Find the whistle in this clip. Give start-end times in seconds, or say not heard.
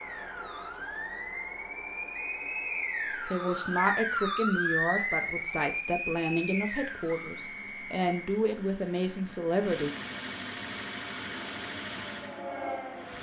2.1-3.2, 7.0-8.4.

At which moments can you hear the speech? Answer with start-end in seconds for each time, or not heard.
3.2-9.9.